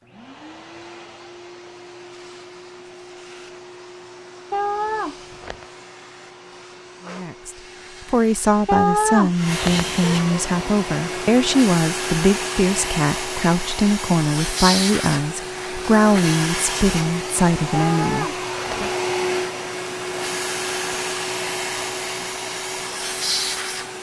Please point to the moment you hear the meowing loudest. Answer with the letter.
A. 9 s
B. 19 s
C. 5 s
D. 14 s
A.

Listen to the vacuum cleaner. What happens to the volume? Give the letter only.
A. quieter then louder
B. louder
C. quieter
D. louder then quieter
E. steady
B.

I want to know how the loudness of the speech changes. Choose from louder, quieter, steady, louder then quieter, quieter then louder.
steady.